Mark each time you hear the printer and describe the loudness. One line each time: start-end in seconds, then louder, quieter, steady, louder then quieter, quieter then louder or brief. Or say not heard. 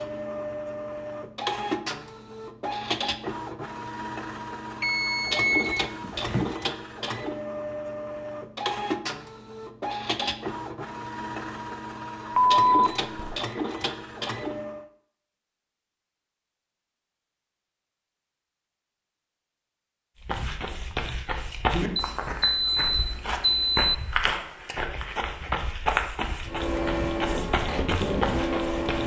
0.0-14.9 steady
26.4-29.0 brief.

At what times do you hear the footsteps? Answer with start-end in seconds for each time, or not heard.
20.2-29.0.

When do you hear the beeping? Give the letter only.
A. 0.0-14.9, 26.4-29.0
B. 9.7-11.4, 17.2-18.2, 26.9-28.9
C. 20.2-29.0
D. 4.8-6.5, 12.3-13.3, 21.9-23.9
D.